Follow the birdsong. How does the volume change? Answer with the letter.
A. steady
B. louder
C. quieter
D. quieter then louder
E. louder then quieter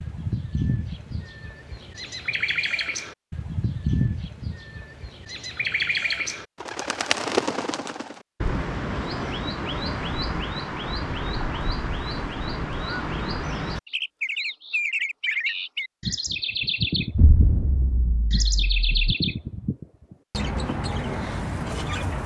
A.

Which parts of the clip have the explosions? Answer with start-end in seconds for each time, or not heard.
17.1-18.9.